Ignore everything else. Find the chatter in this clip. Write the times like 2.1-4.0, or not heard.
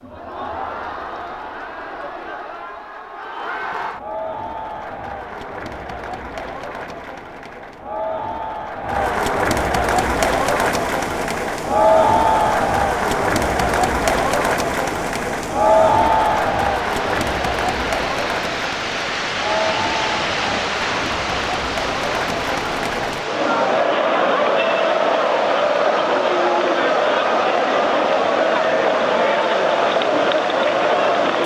0.0-31.4.